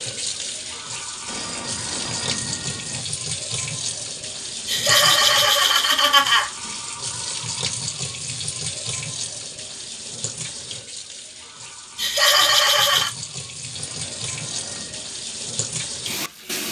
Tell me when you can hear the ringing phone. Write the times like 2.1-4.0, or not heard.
1.2-3.0, 13.7-15.1.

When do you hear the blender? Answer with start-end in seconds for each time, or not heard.
not heard.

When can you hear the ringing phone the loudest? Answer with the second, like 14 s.
2 s.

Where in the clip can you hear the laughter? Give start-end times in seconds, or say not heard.
4.7-6.5, 11.9-13.1.